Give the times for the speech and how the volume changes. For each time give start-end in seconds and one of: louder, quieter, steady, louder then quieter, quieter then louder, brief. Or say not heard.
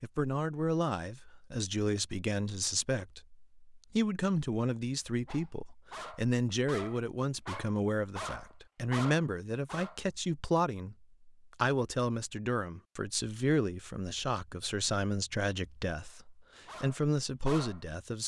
0.0-18.2 steady.